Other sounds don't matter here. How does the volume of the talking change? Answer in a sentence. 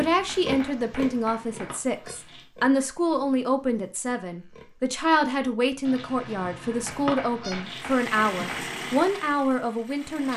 The loudness of the talking stays about the same.